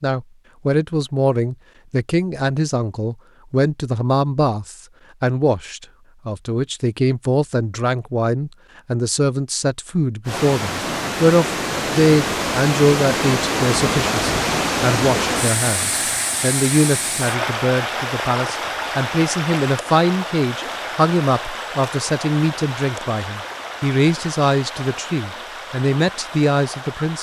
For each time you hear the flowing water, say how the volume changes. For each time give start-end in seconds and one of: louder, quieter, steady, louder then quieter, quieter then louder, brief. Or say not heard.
10.2-27.1 quieter.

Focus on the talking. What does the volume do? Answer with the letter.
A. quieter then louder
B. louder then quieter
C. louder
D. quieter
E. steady
E.